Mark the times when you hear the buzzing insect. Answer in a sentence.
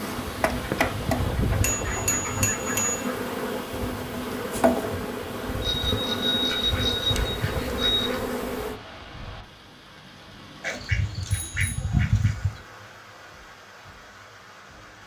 You can hear the buzzing insect from 0.0 to 8.8 s.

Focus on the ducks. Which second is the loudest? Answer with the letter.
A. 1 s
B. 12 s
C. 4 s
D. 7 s
B.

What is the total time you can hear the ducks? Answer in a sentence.
You can hear the ducks for 6 seconds altogether.